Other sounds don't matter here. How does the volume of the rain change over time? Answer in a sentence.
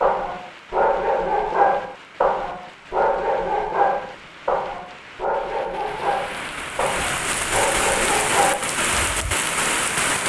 The loudness of the rain goes up.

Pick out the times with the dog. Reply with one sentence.
The dog can be heard from 0.0 to 9.3 s.